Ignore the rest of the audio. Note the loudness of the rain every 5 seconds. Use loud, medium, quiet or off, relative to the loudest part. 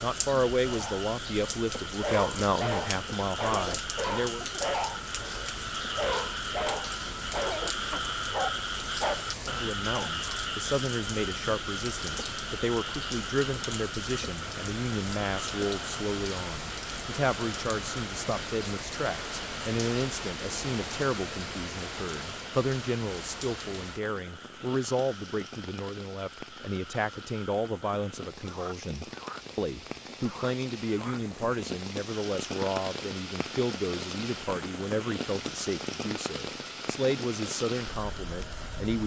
loud, loud, loud, loud, loud, medium, loud, loud.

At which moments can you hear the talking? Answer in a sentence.
You can hear the talking from 0.0 to 4.5 s and from 9.4 to 39.0 s.